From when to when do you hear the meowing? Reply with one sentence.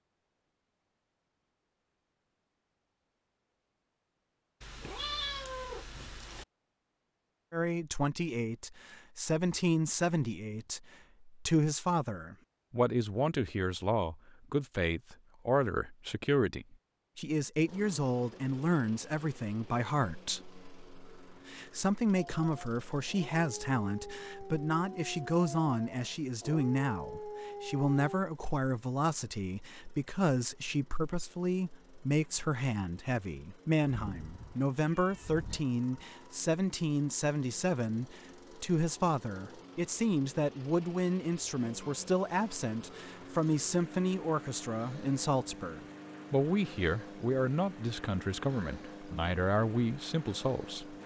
You can hear the meowing from 4.6 to 6.5 s and from 33.9 to 35.6 s.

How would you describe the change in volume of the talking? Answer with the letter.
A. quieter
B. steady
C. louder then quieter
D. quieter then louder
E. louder
B.